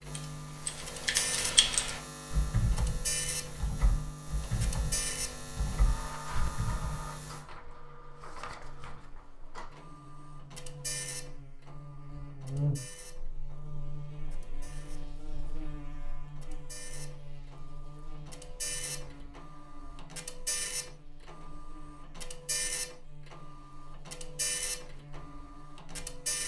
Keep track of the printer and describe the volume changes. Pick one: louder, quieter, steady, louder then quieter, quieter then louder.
quieter then louder.